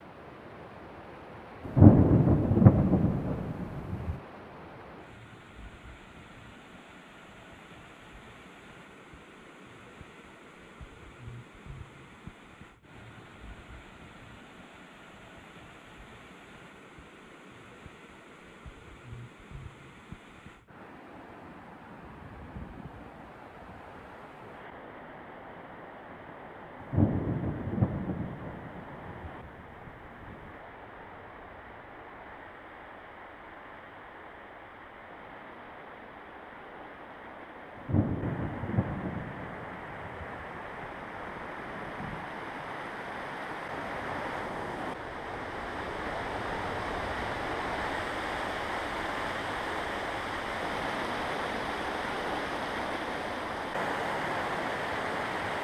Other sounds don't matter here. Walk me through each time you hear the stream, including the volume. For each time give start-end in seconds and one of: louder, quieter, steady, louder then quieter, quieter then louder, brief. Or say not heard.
0.0-55.5 louder.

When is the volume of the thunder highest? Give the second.
2 s.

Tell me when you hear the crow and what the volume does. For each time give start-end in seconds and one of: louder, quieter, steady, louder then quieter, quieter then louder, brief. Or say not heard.
not heard.